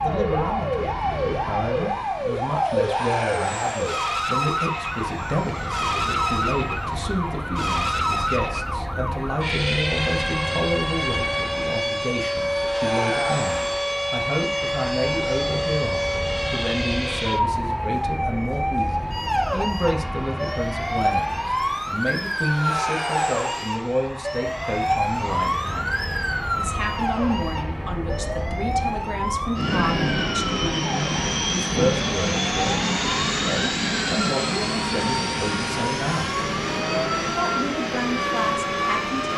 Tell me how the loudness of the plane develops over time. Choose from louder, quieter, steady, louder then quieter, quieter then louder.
louder.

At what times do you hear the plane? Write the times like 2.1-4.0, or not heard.
0.0-39.3.